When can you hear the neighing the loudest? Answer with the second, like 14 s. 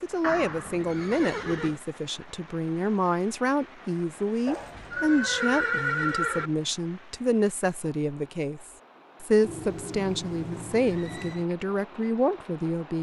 6 s.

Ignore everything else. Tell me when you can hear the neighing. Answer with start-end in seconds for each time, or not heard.
0.2-1.8, 4.5-6.5, 9.4-11.4.